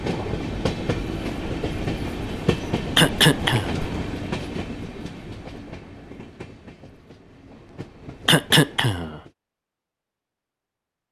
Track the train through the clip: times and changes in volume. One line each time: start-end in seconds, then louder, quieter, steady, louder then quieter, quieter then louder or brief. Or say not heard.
0.0-9.3 quieter.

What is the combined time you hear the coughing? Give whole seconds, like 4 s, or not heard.
2 s.